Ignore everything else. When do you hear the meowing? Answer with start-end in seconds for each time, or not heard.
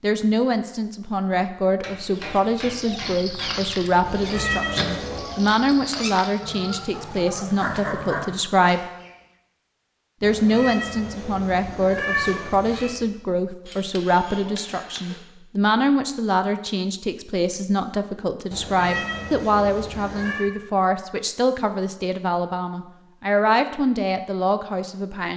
4.0-5.3, 10.2-12.9, 18.5-20.5.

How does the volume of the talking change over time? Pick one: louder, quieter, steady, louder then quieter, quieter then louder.
steady.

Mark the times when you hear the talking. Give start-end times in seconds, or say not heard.
0.0-8.8, 10.2-25.3.